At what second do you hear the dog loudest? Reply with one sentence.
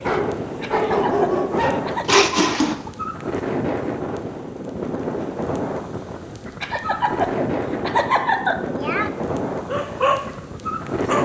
The loudest moment of the dog is at 2 seconds.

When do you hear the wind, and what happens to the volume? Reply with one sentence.
The wind can be heard from 0.0 to 11.2 s, at a steady volume.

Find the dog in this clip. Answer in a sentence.
You can hear the dog from 0.0 to 2.9 s and from 9.7 to 11.2 s.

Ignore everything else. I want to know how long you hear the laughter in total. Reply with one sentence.
You can hear the laughter for 4 seconds altogether.